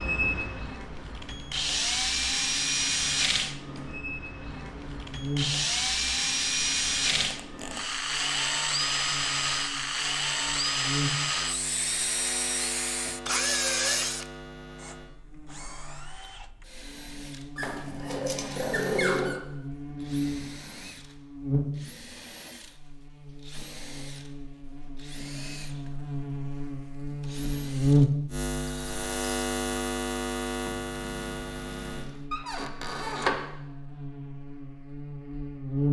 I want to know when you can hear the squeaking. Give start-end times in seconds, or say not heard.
7.0-7.8, 17.6-19.4, 32.3-33.4.